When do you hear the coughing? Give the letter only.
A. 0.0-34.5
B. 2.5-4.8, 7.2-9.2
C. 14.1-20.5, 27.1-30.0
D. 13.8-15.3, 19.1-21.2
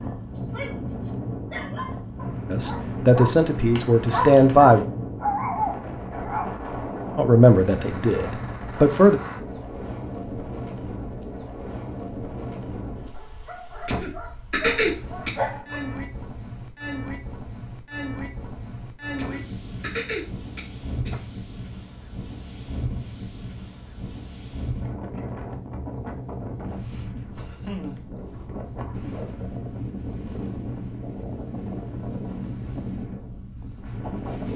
D.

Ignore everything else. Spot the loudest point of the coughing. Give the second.
15 s.